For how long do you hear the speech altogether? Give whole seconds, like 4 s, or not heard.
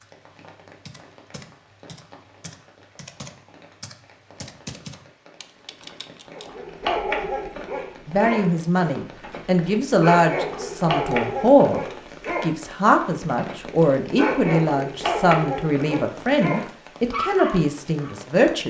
10 s.